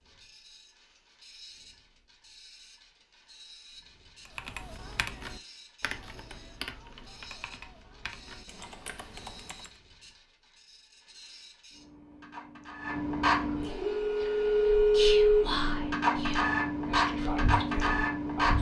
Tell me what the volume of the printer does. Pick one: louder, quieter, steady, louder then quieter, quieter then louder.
louder.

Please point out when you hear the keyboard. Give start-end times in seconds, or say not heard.
4.2-9.7.